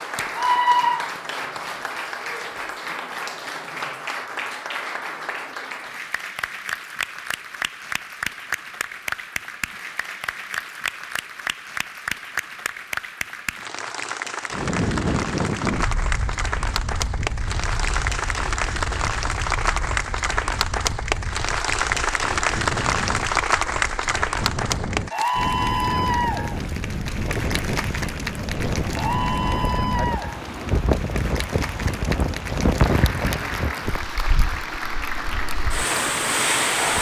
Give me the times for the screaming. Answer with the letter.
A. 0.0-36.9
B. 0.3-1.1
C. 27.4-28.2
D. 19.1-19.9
B.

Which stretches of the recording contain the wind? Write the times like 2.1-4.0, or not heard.
14.5-36.9.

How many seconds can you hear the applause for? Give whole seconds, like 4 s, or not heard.
37 s.